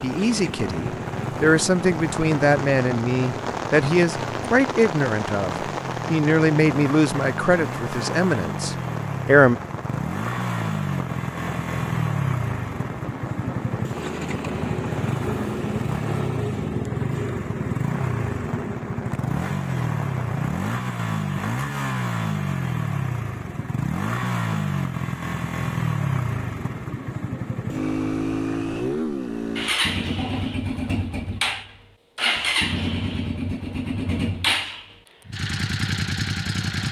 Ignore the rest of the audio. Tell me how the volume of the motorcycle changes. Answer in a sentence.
The loudness of the motorcycle goes up.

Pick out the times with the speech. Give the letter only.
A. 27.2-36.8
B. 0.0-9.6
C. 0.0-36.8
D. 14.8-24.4
B.